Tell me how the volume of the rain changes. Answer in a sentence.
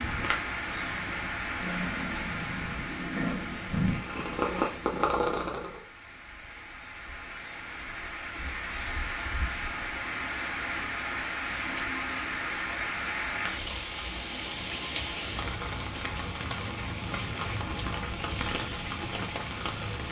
The loudness of the rain goes down, then up.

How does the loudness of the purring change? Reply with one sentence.
The volume of the purring goes up.